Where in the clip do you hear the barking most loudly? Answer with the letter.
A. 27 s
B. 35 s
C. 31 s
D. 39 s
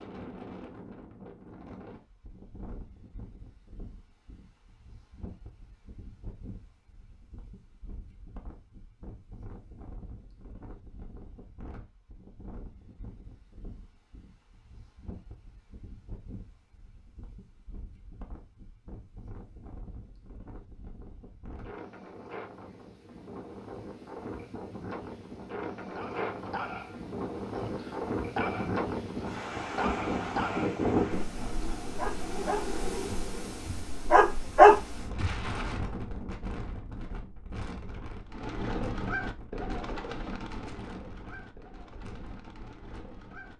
B.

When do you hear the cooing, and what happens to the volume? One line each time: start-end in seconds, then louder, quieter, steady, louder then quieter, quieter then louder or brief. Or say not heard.
38.2-43.5 quieter.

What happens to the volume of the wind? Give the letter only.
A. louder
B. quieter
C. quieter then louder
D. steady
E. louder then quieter
E.